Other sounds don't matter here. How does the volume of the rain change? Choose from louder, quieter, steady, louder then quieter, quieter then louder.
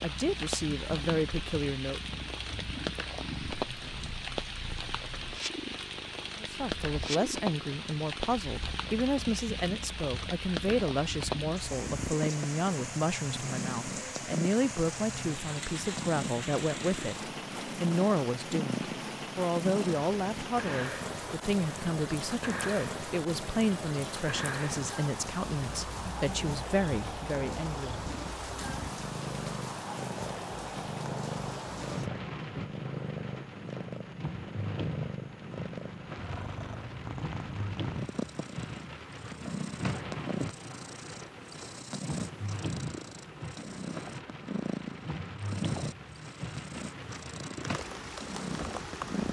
steady.